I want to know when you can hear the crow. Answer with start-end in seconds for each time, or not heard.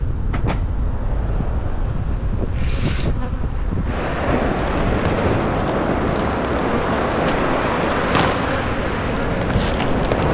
not heard.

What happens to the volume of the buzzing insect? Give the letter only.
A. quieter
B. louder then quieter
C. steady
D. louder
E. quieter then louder
D.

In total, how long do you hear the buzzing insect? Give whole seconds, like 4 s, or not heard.
10 s.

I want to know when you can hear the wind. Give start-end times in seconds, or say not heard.
0.0-10.2.